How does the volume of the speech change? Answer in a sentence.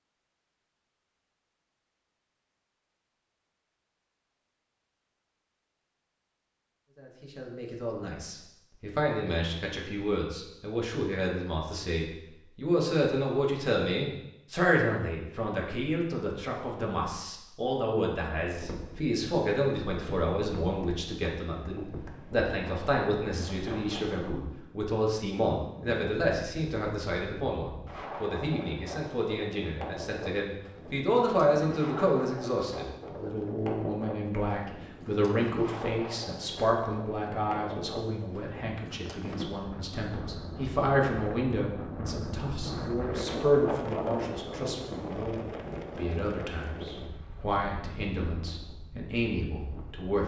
The volume of the speech stays about the same.